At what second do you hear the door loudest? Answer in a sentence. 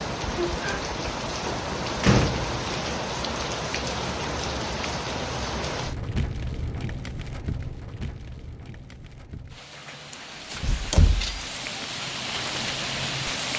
The volume of the door peaks at 2 seconds.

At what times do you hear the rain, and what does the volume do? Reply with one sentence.
You can hear the rain from 0.0 to 13.5 s, getting quieter then louder.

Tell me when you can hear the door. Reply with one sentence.
You can hear the door from 0.8 to 2.6 s and from 10.1 to 11.6 s.